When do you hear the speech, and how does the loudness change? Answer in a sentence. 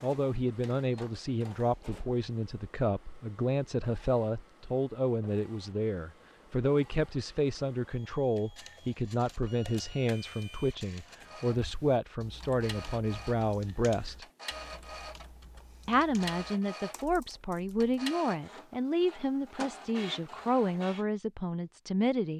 The speech can be heard from 0.0 to 14.2 s, at a steady volume; and from 15.8 to 22.3 s, at a steady volume.